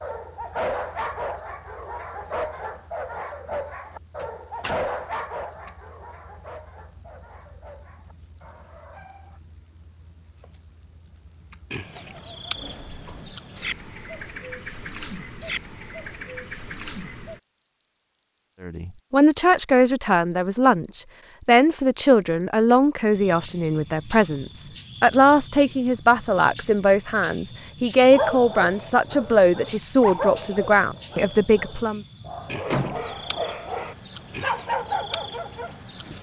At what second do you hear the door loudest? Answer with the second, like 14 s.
33 s.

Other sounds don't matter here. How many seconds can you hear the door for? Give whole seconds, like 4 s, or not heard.
2 s.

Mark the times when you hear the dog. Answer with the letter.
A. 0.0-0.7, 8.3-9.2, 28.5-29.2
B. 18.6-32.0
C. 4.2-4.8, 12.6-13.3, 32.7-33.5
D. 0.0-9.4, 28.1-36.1
D.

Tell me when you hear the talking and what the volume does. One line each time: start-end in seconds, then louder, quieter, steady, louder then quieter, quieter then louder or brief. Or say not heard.
18.6-32.0 steady.